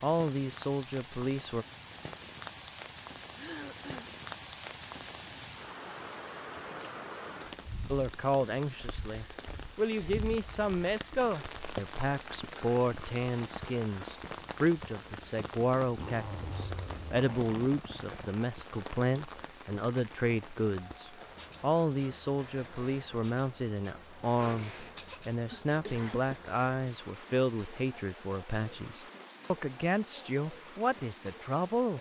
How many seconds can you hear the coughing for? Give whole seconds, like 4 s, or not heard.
3 s.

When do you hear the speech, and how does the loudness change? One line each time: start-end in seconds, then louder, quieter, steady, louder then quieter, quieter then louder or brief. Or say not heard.
0.0-1.6 brief
7.9-31.9 steady.